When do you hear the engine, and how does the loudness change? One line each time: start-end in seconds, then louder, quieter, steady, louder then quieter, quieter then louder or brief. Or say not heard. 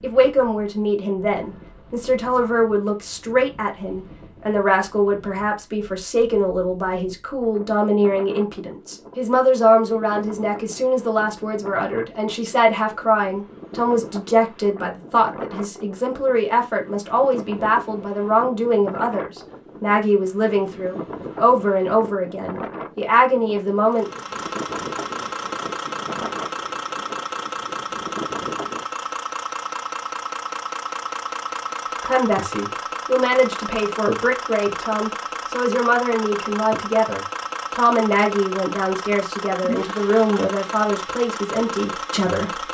23.9-42.6 steady.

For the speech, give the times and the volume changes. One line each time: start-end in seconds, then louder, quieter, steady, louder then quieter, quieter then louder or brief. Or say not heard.
0.0-24.1 steady
32.0-42.6 steady.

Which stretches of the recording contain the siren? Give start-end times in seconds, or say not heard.
not heard.